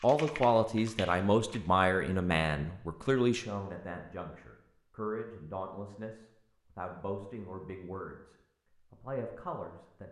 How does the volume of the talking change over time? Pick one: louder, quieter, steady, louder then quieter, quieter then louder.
quieter.